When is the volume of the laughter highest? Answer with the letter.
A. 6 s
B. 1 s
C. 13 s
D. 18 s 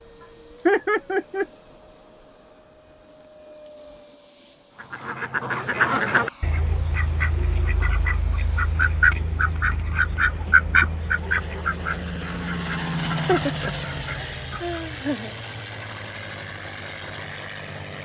B.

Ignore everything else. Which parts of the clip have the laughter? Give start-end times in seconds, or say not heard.
0.7-1.4, 13.1-15.3.